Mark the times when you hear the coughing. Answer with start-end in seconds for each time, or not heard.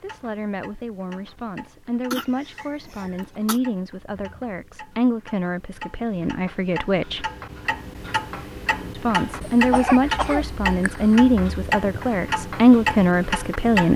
2.1-3.6, 9.4-11.2.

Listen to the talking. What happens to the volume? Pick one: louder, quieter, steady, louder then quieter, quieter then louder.
louder.